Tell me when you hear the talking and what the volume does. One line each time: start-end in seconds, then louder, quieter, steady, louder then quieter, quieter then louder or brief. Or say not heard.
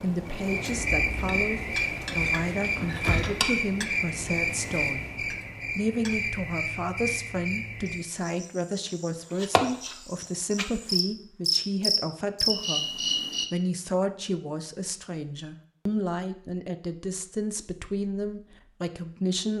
0.0-5.0 steady
5.8-19.5 steady.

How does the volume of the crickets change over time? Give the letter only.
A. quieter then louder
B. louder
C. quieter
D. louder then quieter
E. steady
A.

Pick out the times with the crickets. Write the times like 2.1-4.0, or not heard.
0.0-13.4.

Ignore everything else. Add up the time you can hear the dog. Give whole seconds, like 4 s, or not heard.
not heard.